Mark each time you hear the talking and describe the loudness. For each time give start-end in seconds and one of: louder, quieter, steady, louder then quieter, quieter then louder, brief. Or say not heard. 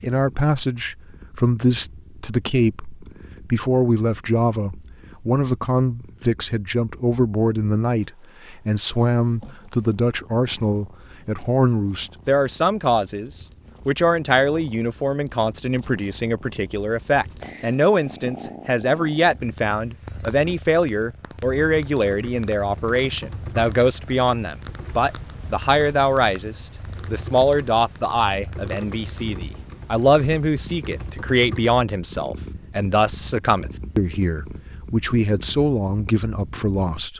0.0-37.1 steady.